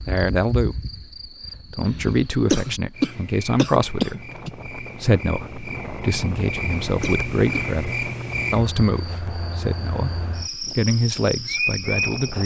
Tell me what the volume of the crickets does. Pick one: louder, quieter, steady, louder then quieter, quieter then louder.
louder.